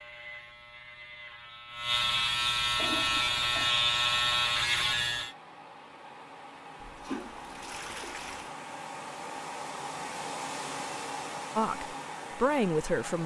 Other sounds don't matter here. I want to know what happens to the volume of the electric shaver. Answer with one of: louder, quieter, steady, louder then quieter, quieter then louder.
louder.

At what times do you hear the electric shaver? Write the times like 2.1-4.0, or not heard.
0.0-5.3.